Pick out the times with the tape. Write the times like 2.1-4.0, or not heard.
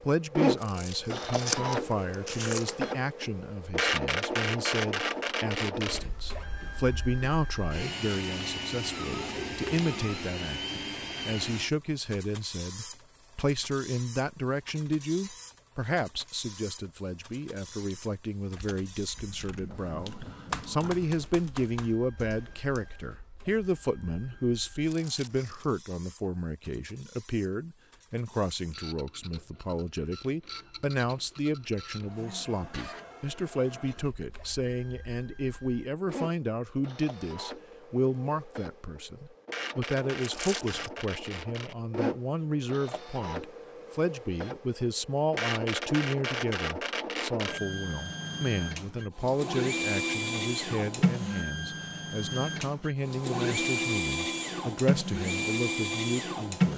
not heard.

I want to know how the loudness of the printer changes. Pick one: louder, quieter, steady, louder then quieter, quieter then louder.
quieter then louder.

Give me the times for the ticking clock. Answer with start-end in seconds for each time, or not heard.
not heard.